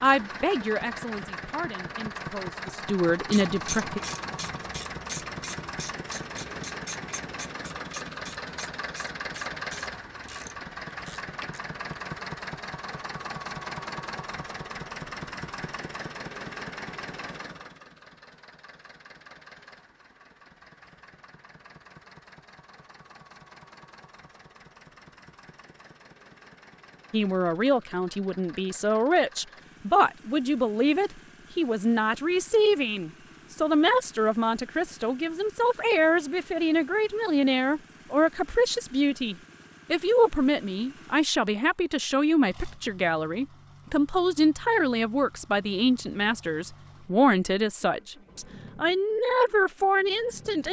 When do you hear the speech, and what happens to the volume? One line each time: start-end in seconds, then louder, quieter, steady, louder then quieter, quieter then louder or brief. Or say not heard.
0.0-4.0 quieter then louder
27.1-50.6 steady.